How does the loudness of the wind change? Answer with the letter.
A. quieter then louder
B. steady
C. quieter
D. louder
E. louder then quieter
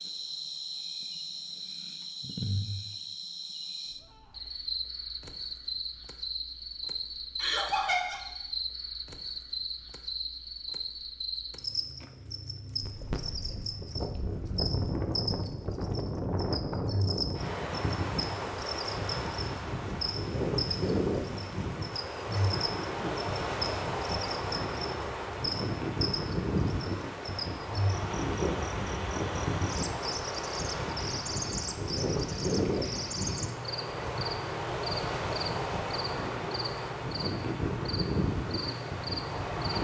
B.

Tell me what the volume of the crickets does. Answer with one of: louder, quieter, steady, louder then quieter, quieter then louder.
steady.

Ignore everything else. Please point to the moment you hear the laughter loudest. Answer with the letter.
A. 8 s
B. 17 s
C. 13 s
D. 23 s
A.